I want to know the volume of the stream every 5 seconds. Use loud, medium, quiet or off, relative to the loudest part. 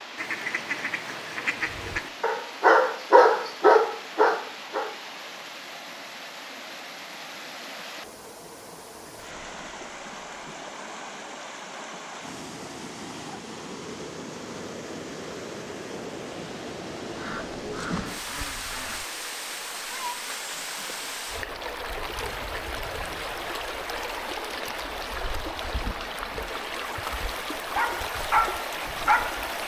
medium, medium, medium, loud, loud, loud.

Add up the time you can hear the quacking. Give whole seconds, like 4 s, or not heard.
4 s.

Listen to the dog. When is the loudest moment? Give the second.
3 s.